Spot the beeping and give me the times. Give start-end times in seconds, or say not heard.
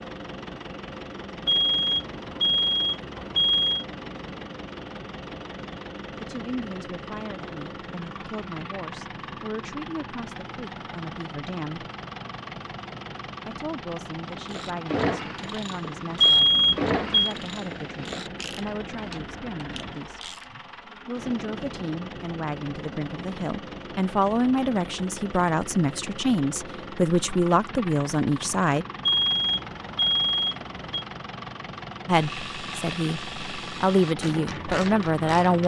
1.4-3.9, 16.2-17.4, 29.0-31.1.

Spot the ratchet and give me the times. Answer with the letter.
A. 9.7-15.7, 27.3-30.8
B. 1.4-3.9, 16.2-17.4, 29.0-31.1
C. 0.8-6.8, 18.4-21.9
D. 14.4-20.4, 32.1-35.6
D.